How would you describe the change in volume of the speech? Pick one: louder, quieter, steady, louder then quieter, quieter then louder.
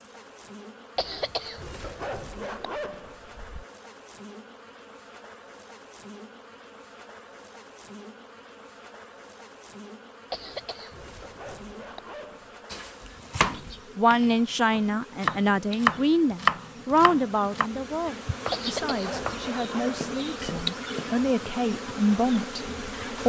quieter then louder.